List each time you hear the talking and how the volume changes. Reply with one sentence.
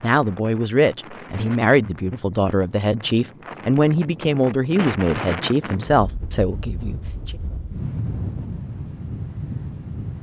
You can hear the talking from 0.0 to 7.3 s, at a steady volume.